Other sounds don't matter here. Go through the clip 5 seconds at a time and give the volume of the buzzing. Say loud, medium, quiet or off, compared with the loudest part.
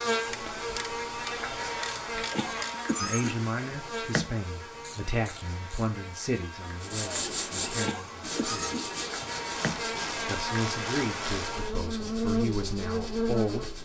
loud, medium, loud.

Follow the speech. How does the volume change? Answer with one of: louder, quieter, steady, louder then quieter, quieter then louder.
quieter then louder.